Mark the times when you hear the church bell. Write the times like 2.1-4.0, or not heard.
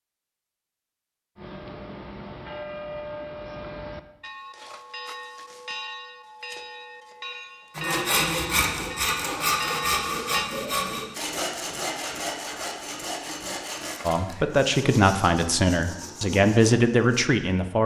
1.4-10.5.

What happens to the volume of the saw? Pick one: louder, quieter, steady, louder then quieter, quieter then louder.
quieter.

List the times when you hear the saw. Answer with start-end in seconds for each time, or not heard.
7.8-17.3.